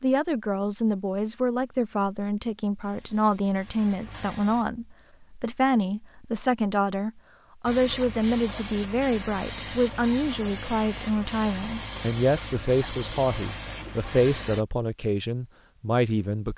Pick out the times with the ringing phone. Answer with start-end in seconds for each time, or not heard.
not heard.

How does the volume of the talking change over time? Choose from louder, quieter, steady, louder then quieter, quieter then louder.
steady.